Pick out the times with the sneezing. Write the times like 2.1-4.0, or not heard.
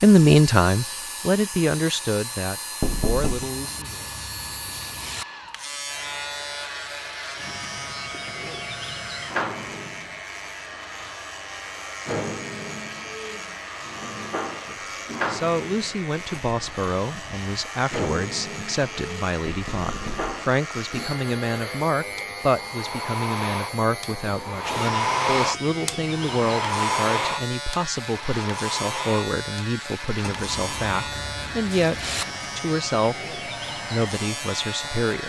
not heard.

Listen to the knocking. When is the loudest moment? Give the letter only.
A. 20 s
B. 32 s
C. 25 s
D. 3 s
D.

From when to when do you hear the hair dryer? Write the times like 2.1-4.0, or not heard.
0.0-35.2.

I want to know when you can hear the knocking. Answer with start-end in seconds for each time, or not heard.
2.8-3.5, 19.4-20.3.